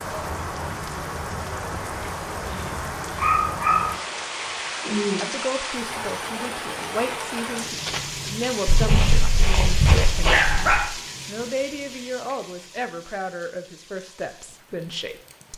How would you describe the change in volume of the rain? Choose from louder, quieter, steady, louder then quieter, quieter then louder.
quieter.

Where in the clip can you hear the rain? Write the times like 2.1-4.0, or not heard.
0.0-15.5.